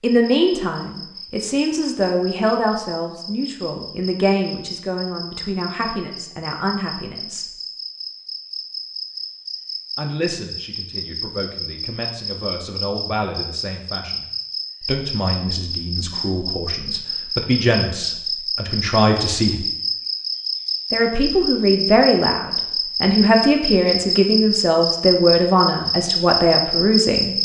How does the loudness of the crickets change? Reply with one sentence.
The volume of the crickets goes up.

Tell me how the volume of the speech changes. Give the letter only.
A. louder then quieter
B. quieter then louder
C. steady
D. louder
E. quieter
B.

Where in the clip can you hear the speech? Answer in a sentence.
The speech can be heard from 0.0 to 7.5 s, from 9.9 to 19.6 s and from 20.9 to 27.4 s.